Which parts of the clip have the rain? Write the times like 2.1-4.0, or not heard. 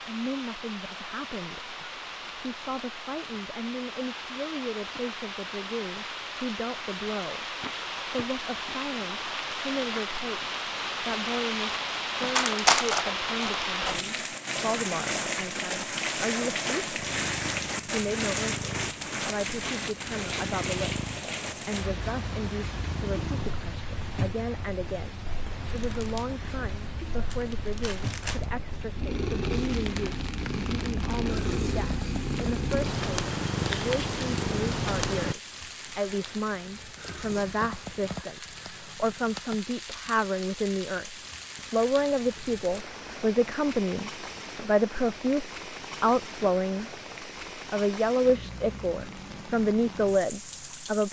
0.0-51.0.